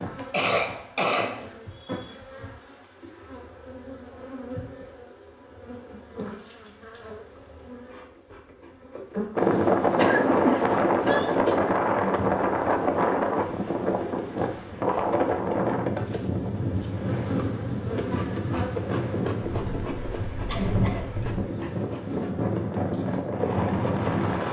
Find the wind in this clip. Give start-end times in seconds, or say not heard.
9.3-24.4.